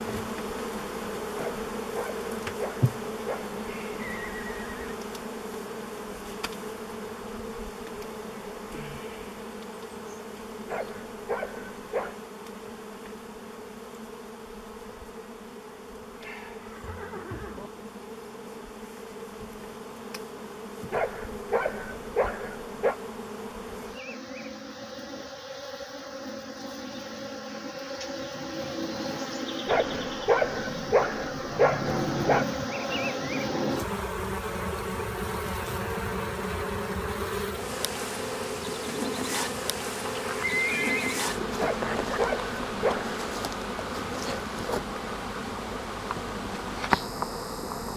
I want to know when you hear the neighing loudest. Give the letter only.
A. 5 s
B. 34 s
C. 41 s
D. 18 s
C.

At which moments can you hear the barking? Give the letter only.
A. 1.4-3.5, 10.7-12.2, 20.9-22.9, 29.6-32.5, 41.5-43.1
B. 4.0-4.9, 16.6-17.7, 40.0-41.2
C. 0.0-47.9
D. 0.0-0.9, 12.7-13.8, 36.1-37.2
A.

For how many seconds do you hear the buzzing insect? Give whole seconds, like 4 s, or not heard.
48 s.